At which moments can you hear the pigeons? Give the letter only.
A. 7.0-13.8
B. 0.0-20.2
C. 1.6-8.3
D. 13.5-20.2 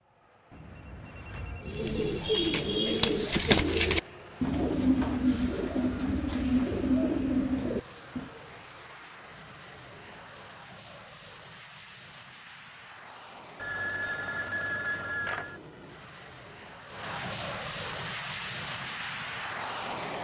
C.